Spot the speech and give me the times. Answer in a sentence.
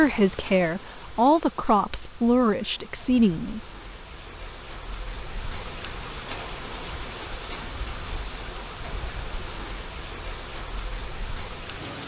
You can hear the speech from 0.0 to 3.6 s.